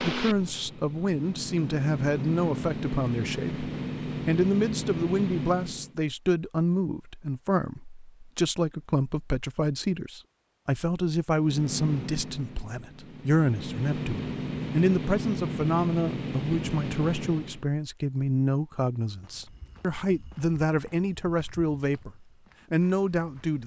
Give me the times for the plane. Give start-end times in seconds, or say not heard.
0.0-6.0, 11.3-17.6.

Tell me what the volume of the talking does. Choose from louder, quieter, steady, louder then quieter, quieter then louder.
steady.